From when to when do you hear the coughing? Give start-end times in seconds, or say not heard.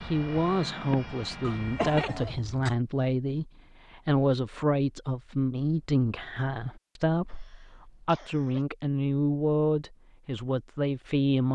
1.4-2.8, 7.3-8.7.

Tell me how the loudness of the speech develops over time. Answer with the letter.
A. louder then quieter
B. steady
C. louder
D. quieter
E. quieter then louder
B.